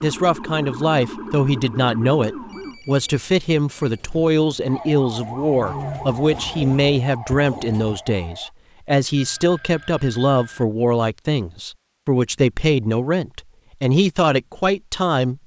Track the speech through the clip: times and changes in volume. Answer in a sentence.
You can hear the speech from 0.0 to 15.4 s, at a steady volume.